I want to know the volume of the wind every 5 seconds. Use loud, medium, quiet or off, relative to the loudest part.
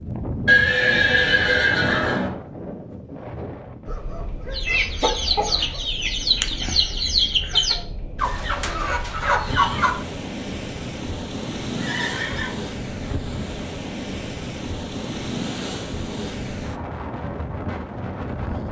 loud, medium, loud, loud.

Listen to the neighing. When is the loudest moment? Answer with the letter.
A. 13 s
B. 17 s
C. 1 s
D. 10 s
C.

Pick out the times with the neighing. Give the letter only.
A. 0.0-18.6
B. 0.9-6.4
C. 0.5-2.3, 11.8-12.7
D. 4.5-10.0
C.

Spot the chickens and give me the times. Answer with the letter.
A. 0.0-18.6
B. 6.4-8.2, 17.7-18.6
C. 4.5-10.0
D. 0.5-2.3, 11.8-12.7
C.